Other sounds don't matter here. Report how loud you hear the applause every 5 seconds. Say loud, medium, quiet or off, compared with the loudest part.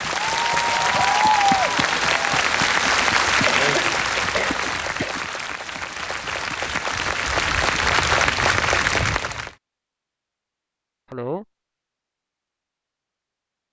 loud, loud, off.